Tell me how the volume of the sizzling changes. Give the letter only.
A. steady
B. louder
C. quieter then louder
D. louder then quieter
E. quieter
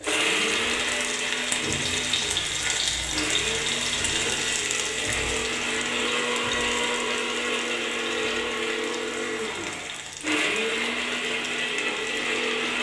E.